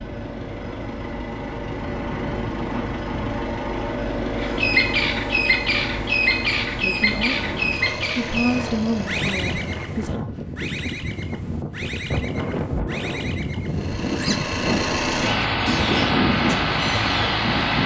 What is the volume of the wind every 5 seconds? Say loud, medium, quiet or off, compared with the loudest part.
medium, medium, loud, loud.